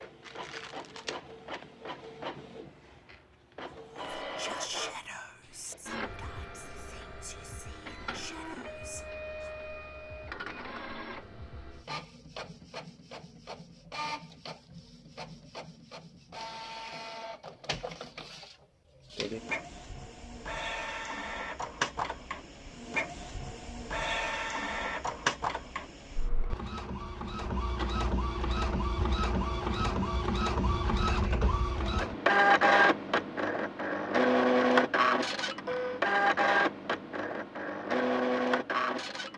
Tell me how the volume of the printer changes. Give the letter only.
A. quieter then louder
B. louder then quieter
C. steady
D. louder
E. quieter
D.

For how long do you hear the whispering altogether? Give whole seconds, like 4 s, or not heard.
6 s.